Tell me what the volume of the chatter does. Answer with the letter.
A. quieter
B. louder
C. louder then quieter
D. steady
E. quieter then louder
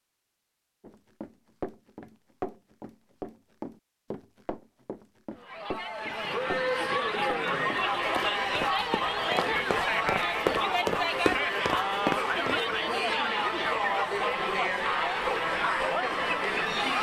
D.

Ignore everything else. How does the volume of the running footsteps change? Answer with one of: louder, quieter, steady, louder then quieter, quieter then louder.
louder.